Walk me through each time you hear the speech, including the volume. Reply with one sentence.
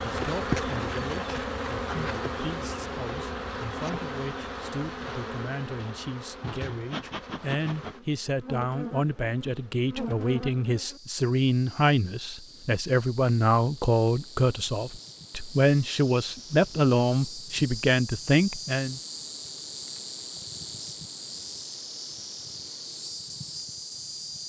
You can hear the speech from 0.0 to 19.0 s, getting louder.